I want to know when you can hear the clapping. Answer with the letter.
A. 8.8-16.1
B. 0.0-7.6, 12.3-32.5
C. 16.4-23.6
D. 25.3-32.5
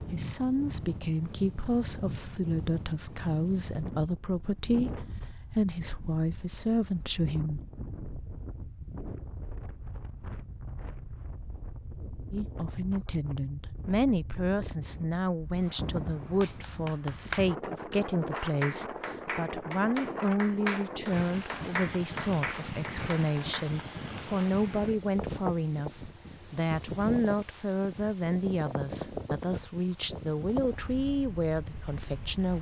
C.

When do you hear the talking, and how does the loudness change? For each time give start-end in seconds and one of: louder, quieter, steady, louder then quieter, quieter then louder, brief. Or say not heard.
0.0-7.6 steady
12.3-32.5 steady.